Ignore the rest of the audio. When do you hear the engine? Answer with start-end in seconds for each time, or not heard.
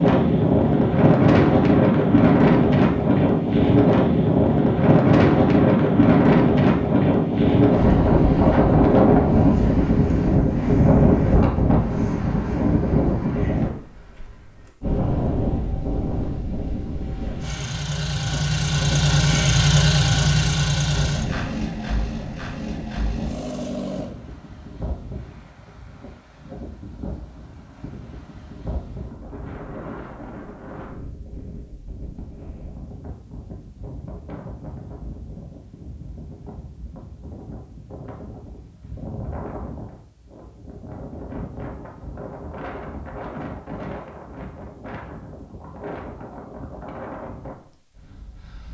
17.4-24.1.